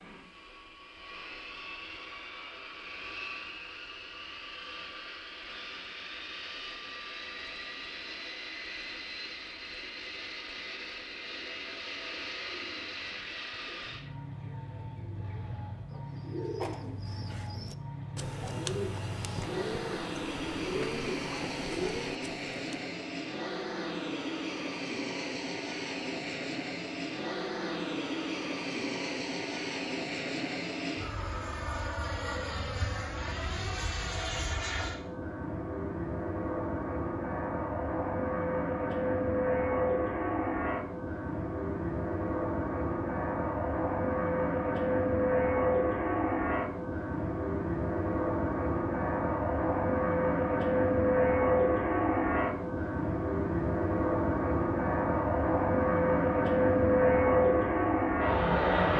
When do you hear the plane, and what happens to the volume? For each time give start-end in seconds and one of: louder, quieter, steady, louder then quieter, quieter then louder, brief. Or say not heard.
0.0-58.9 louder.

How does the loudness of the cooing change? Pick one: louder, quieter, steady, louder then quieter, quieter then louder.
louder.